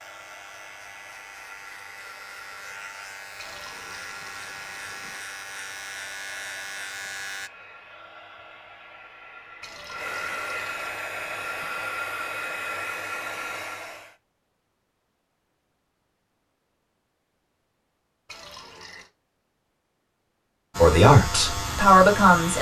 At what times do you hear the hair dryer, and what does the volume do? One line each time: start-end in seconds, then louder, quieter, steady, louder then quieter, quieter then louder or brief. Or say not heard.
0.0-14.2 louder.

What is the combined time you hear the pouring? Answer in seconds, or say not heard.
4 s.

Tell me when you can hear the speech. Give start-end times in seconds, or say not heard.
20.8-22.5.